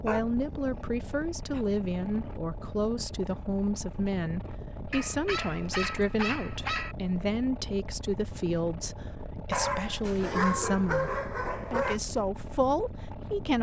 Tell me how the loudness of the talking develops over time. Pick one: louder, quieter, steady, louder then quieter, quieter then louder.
steady.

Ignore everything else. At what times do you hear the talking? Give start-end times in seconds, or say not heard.
0.0-13.5.